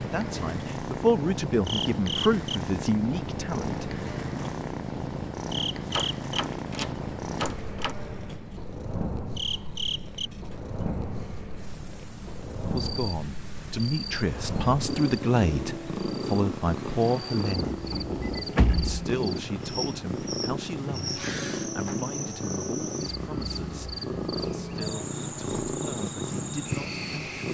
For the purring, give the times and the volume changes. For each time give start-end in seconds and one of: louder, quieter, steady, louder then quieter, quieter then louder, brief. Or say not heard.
0.0-27.5 steady.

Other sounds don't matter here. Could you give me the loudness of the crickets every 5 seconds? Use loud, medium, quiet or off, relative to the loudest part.
loud, loud, medium, loud, loud, loud.